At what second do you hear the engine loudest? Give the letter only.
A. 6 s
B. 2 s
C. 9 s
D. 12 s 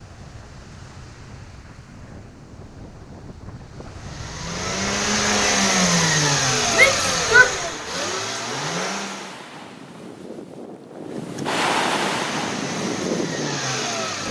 A.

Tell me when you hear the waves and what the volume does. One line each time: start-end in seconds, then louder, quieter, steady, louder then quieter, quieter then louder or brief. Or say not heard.
0.0-14.2 louder.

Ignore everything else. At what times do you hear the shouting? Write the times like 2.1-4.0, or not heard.
6.7-7.5.